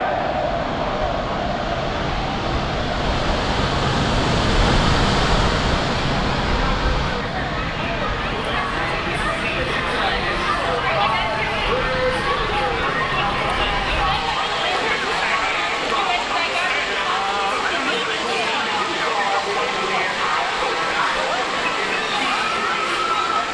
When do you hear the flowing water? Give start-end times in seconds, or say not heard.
0.0-23.4.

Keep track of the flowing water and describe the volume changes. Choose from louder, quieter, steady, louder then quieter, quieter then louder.
quieter.